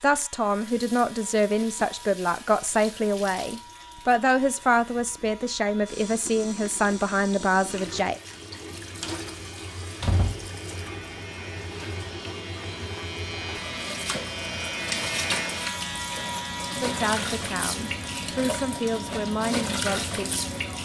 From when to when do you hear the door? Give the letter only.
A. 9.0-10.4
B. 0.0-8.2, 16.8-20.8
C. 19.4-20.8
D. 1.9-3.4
A.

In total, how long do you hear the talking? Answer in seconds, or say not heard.
12 s.